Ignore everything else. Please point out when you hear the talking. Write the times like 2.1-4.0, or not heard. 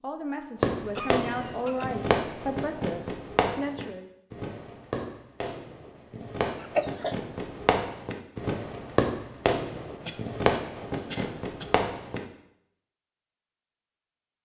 0.0-4.1.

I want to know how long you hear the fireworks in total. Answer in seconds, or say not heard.
12 s.